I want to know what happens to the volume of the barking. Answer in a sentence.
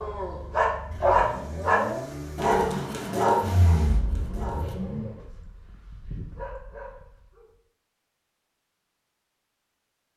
The volume of the barking goes down.